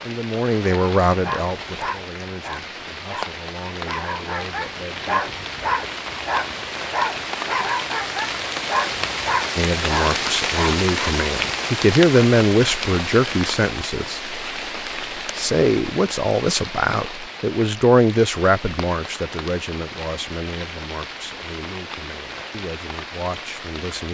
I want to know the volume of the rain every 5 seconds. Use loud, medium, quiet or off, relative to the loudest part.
medium, loud, loud, medium, medium.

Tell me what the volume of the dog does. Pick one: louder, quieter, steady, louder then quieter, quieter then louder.
louder.